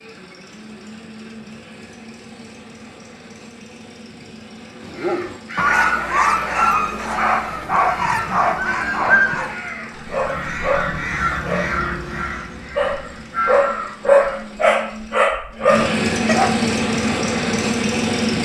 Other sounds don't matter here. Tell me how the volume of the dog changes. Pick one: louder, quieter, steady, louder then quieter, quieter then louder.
steady.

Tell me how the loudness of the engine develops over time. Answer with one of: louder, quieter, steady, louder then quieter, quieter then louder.
louder.